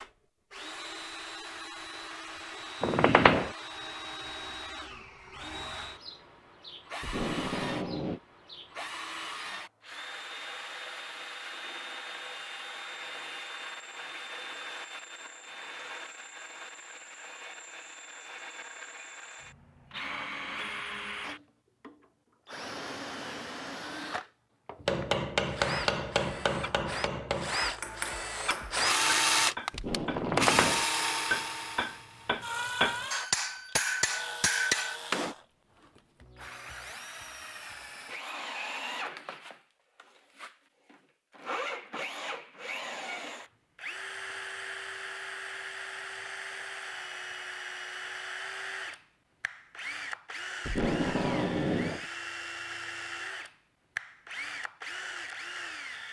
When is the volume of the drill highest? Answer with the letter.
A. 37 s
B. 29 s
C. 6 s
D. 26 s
B.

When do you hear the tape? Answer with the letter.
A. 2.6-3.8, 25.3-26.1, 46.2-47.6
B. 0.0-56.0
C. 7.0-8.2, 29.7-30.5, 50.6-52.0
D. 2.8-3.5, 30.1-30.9
C.